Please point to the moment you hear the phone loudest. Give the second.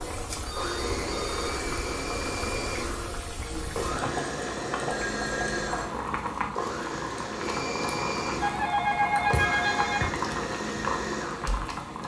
9 s.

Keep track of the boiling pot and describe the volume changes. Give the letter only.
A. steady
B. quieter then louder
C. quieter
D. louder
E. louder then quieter
A.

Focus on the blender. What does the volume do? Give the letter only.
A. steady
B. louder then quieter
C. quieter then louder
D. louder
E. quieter
A.